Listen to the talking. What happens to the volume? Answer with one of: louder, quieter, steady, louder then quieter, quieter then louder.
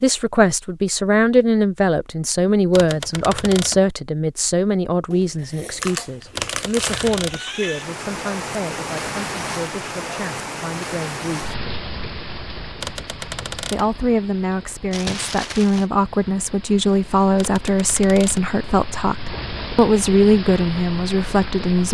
quieter then louder.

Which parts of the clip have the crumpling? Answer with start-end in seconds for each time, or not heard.
5.1-7.2, 14.9-15.8.